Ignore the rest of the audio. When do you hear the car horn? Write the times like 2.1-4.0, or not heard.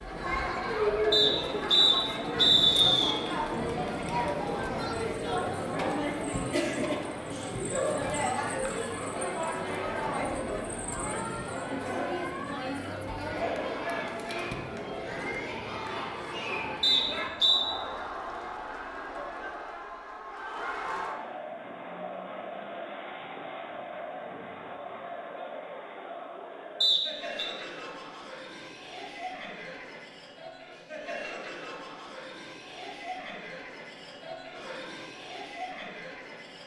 not heard.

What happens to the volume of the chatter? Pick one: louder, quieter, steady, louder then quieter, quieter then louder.
quieter.